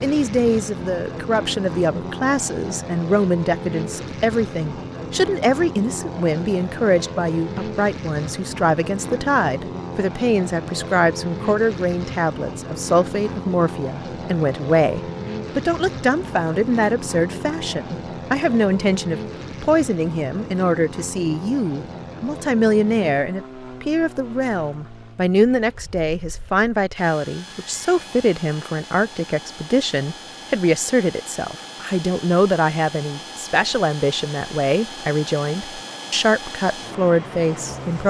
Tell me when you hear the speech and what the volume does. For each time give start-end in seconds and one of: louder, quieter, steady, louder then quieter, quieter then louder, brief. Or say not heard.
0.0-38.0 steady.